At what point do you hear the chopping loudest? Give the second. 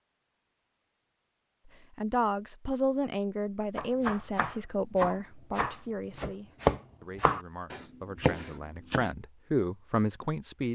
7 s.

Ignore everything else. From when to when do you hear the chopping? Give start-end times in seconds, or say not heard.
3.8-9.1.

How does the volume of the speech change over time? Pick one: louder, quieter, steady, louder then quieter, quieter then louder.
quieter then louder.